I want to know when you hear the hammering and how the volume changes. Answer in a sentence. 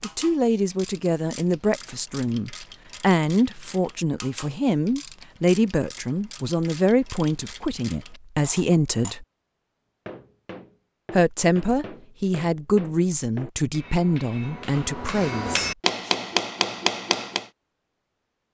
The hammering can be heard from 10.1 to 17.4 s, getting louder.